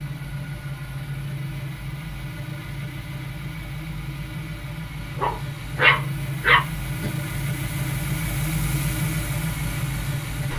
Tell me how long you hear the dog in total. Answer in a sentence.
The dog can be heard for 2 seconds in total.